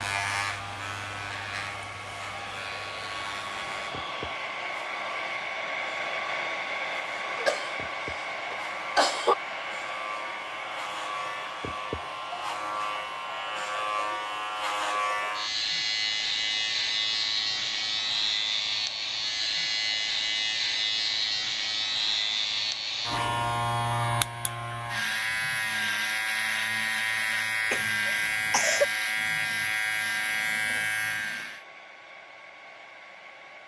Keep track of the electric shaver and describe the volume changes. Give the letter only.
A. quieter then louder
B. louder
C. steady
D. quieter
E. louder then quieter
B.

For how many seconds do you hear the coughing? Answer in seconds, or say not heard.
3 s.